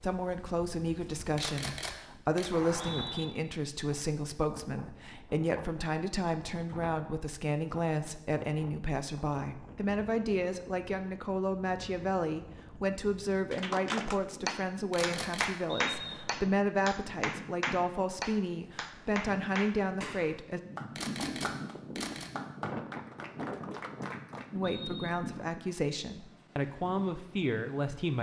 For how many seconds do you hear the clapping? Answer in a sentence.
The clapping can be heard for 11 seconds in total.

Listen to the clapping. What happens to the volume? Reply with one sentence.
The volume of the clapping goes down.